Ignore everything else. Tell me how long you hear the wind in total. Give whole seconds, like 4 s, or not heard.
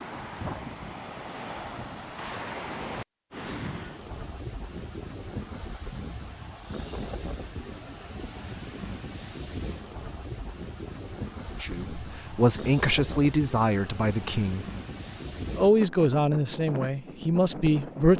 18 s.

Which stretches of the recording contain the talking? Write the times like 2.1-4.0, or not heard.
11.6-14.7, 15.6-18.1.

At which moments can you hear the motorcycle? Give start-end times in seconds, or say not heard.
not heard.